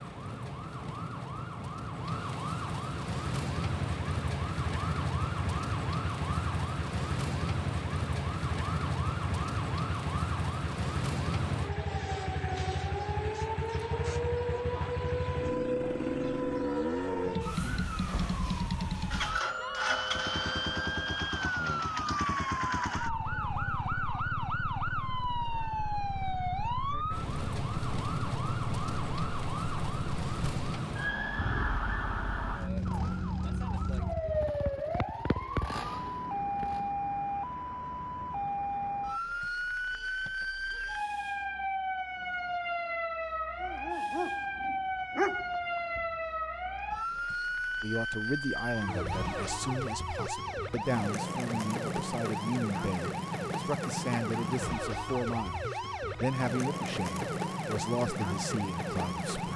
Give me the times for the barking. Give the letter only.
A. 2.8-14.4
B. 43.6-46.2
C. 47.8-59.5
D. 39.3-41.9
B.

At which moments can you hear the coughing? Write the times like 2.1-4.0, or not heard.
not heard.